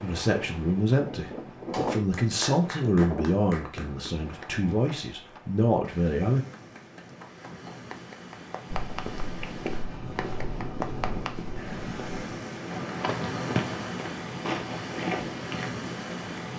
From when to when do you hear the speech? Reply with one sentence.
The speech can be heard from 0.0 to 6.5 s.